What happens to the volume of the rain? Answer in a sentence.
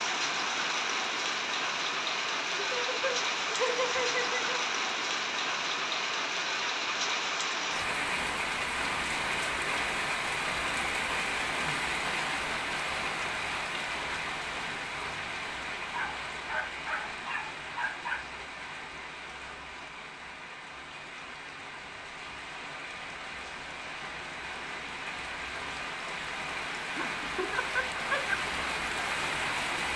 The loudness of the rain goes down, then up.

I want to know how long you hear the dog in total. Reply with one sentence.
You can hear the dog for 2 seconds altogether.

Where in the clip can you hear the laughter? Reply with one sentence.
You can hear the laughter from 2.6 to 4.6 s and from 26.8 to 28.4 s.